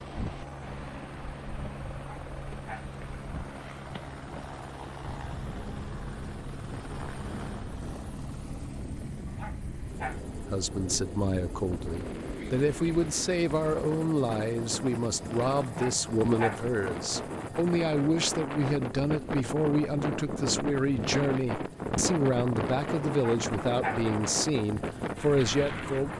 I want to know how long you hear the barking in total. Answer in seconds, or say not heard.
4 s.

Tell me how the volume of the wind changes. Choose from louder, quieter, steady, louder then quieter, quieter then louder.
louder.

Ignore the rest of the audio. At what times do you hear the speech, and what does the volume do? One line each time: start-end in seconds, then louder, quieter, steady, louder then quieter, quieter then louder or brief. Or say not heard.
10.5-26.1 steady.